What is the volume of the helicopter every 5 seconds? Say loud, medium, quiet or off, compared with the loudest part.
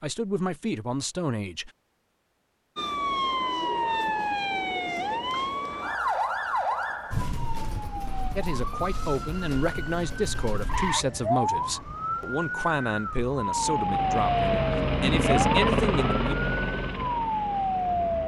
off, off, loud, loud.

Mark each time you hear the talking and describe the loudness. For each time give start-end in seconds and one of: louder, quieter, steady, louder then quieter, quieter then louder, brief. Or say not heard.
0.0-1.7 brief
8.3-16.4 steady.